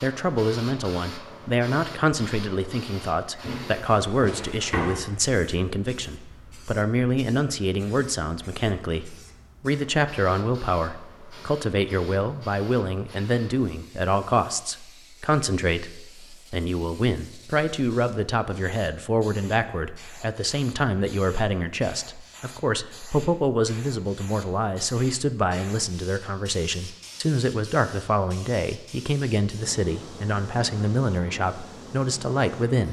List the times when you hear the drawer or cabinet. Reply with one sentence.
You can hear the drawer or cabinet from 3.4 to 5.0 s.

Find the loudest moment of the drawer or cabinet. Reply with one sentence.
The volume of the drawer or cabinet peaks at 5 seconds.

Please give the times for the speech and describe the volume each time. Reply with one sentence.
The speech can be heard from 0.0 to 32.8 s, at a steady volume.